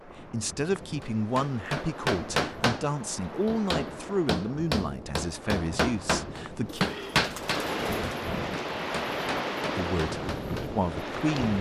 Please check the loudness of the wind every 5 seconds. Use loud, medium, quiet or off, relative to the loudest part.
medium, loud, loud.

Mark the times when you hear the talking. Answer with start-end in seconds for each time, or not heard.
0.1-6.9, 9.8-11.5.